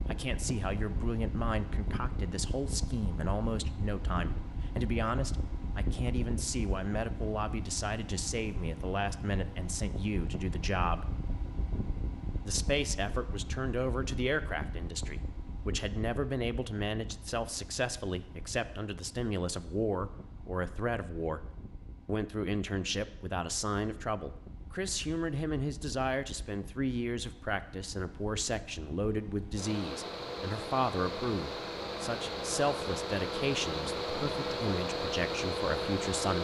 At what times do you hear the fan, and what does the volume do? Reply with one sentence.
The fan can be heard from 0.0 to 36.3 s, getting quieter then louder.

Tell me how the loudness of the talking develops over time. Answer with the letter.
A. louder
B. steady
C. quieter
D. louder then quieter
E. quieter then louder
B.